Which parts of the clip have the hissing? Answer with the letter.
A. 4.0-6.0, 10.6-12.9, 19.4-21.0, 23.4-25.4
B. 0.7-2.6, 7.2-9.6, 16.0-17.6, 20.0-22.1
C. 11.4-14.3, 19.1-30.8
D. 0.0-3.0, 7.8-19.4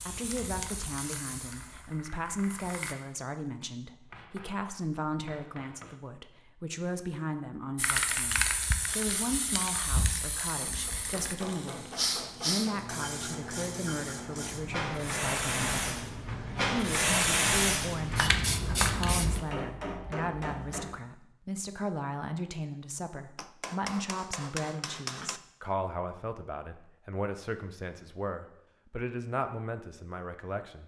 D.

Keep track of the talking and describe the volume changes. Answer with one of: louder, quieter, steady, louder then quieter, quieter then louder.
steady.